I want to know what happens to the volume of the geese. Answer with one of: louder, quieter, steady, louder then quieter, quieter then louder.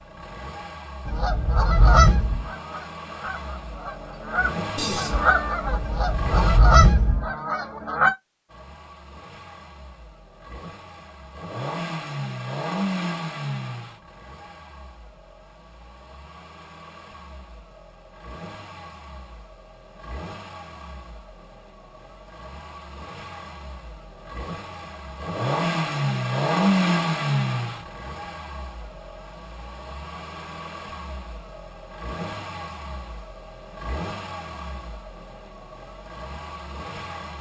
quieter then louder.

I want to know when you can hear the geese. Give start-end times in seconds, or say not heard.
1.1-8.2.